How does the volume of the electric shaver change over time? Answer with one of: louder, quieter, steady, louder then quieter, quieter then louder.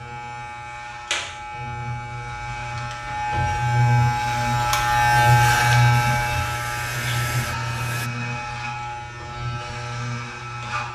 louder then quieter.